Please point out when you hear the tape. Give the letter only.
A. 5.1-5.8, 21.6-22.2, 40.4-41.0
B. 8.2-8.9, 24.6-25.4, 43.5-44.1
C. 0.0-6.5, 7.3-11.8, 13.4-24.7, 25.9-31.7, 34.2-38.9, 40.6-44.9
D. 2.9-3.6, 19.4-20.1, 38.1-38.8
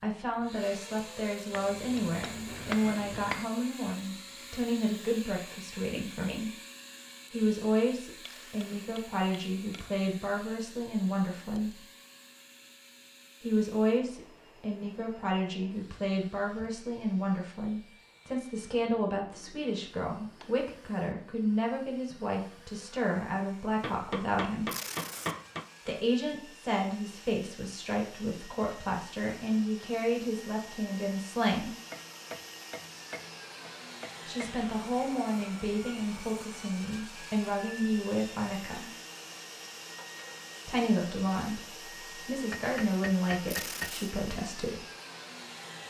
B.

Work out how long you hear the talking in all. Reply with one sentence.
You can hear the talking for 37 seconds altogether.